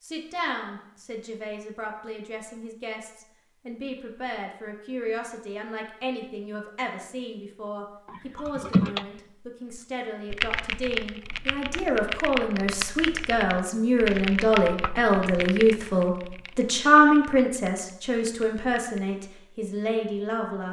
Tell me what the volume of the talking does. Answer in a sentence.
The loudness of the talking goes up.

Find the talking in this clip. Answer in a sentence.
You can hear the talking from 0.0 to 20.6 s.